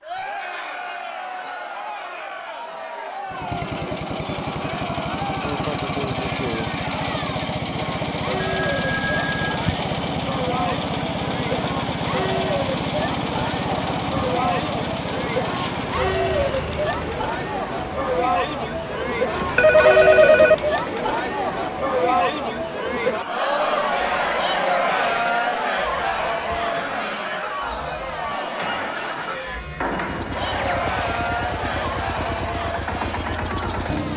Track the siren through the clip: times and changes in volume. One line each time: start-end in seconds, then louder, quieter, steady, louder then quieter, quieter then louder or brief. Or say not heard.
not heard.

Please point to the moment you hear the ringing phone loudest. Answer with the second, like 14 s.
20 s.